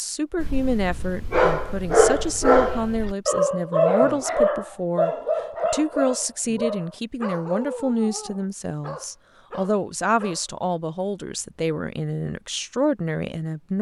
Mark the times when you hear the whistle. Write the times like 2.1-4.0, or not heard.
not heard.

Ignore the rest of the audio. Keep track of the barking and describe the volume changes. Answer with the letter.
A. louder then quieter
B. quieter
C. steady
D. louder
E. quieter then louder
B.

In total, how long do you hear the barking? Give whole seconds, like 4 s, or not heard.
10 s.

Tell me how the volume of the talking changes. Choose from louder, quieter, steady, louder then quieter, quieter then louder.
steady.